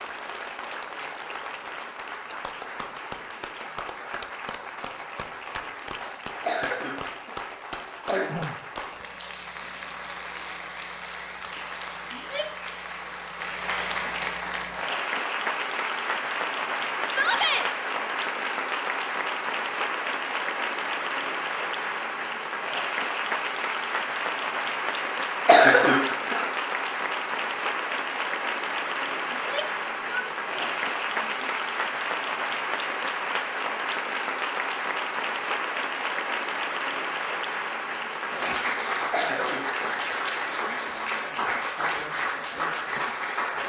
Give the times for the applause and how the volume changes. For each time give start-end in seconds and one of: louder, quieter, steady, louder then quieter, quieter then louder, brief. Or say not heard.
0.0-43.6 louder.